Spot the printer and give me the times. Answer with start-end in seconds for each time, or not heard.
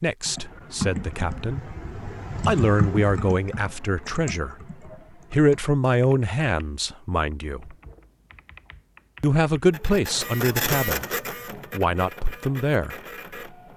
9.7-13.7.